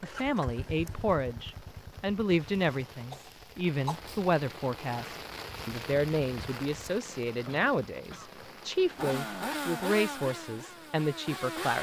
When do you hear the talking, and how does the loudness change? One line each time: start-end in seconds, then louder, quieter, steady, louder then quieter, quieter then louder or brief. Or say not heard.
0.0-11.7 steady.